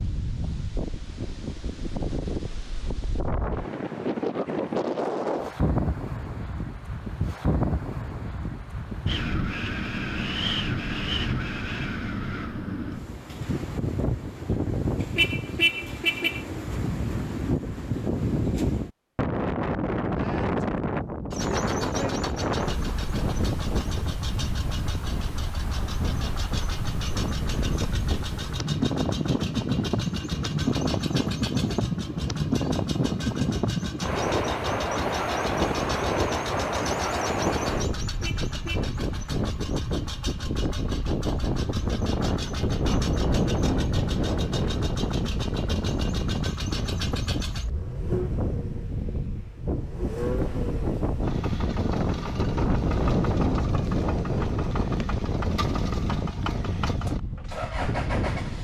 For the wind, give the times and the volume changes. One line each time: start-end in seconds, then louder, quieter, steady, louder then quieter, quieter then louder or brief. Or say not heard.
0.0-58.5 steady.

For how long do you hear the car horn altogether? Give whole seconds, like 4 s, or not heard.
2 s.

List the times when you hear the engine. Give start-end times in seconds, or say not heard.
21.3-58.5.